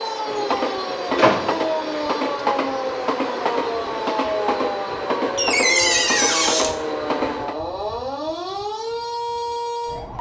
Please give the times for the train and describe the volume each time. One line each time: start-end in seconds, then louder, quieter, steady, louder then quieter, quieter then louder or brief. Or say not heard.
0.0-7.6 steady.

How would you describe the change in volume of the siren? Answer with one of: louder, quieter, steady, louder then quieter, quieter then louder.
steady.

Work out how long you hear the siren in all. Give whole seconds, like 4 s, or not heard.
10 s.